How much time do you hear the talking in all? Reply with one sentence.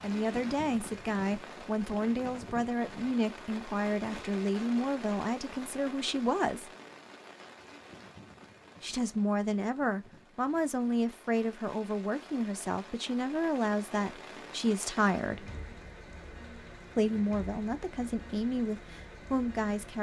The talking can be heard for 16 seconds in total.